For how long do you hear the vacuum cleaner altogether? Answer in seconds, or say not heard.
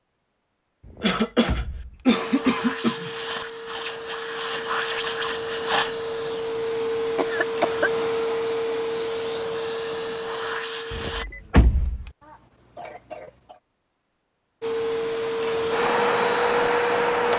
12 s.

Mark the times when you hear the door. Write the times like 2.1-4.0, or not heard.
0.8-2.0, 10.9-12.1.